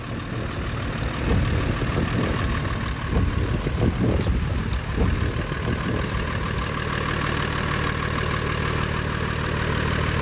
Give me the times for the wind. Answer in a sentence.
You can hear the wind from 0.0 to 6.7 s.